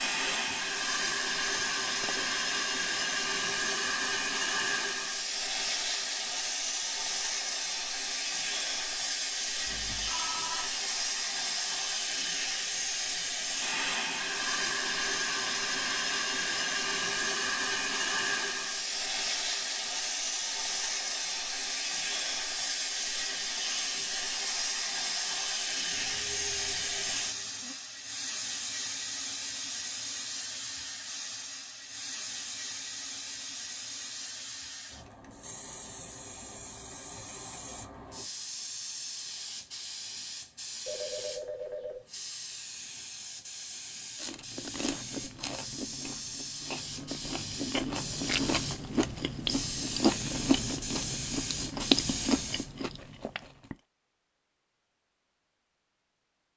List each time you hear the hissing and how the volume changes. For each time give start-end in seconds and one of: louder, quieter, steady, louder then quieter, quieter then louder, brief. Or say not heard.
0.0-52.7 quieter.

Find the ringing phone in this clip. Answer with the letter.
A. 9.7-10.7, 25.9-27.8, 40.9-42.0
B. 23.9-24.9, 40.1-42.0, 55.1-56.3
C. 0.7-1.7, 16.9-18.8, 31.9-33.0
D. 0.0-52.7
A.